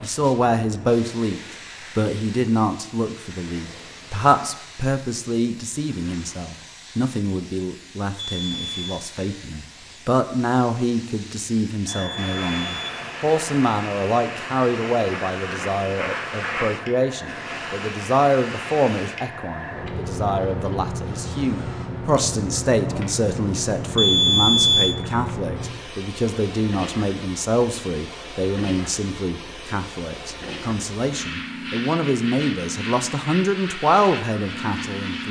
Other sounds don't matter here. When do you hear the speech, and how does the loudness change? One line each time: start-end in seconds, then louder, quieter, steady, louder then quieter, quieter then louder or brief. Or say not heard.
0.0-35.2 steady.